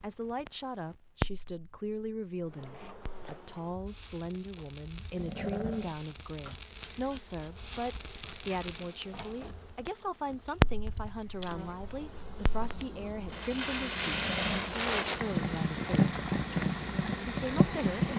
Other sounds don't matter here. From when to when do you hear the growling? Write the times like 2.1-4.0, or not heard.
5.2-6.0, 14.0-14.8.